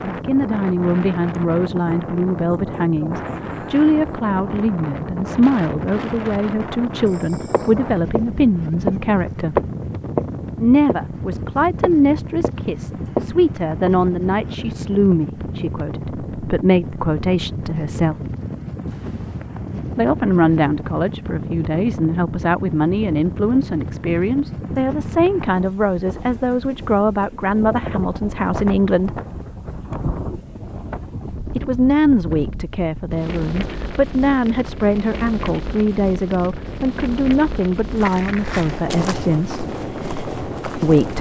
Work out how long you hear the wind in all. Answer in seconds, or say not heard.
41 s.